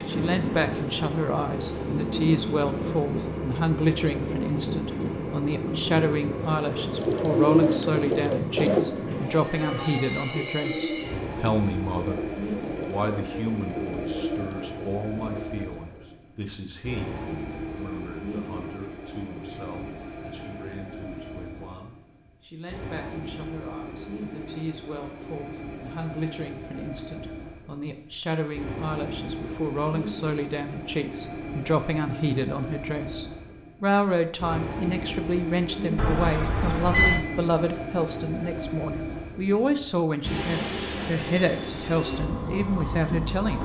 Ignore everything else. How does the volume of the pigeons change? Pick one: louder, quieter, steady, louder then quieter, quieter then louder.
quieter.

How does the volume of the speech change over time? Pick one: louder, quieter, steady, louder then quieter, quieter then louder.
quieter then louder.